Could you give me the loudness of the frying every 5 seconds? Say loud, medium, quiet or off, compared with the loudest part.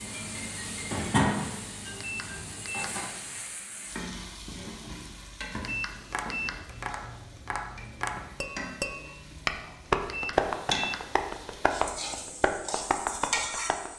loud, medium, loud.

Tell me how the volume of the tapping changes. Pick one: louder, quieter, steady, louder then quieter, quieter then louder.
louder then quieter.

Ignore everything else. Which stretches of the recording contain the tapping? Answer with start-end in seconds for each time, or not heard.
6.1-13.9.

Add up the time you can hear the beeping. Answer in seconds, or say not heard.
3 s.